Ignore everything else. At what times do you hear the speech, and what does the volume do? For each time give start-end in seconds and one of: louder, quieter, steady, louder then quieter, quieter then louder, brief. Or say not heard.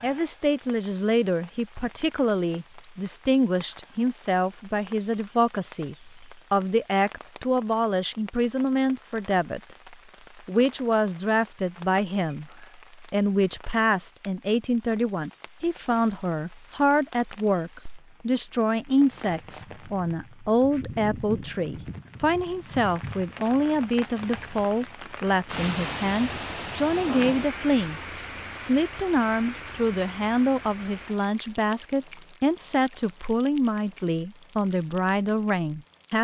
0.0-36.2 steady.